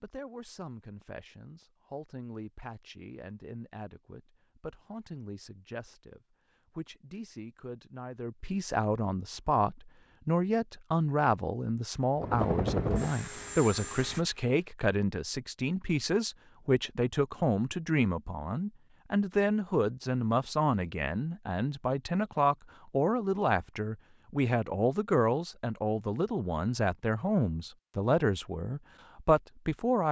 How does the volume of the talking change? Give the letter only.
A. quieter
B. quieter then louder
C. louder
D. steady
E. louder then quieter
C.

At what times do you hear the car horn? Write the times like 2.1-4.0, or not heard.
not heard.